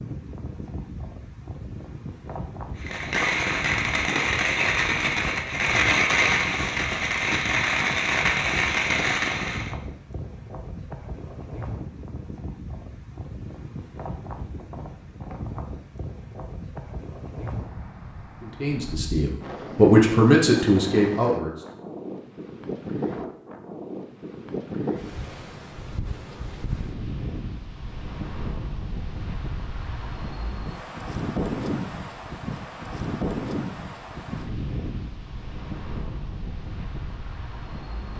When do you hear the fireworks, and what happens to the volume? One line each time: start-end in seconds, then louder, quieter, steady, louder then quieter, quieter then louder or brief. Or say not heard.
2.8-9.8 steady.